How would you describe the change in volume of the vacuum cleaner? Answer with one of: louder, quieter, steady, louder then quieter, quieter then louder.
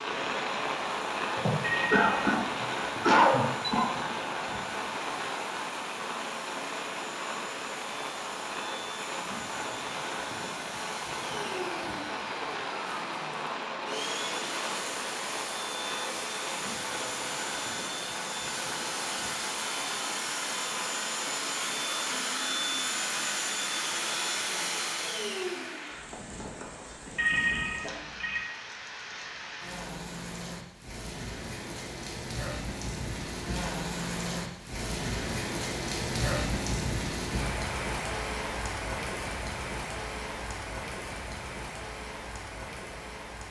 louder.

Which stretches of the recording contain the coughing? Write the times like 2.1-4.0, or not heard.
1.4-3.9.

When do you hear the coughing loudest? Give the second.
3 s.